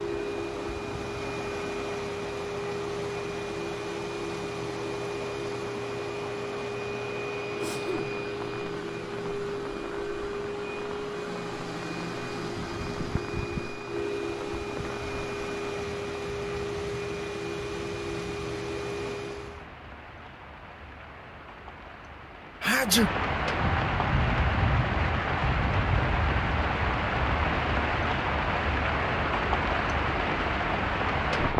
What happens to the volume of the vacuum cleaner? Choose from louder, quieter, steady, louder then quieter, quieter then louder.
steady.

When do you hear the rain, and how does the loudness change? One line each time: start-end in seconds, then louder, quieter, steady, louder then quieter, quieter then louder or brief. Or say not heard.
0.0-31.5 louder.